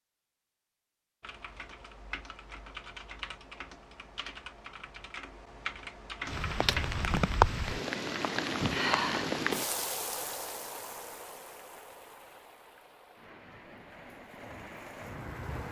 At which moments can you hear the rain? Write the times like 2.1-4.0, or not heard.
6.2-15.6.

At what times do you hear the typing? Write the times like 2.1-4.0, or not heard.
1.2-7.2.